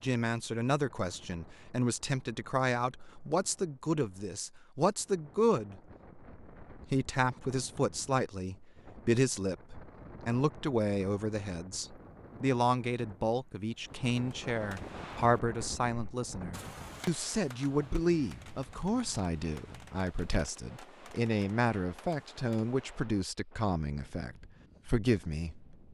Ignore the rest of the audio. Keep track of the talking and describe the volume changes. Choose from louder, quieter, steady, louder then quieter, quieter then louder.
steady.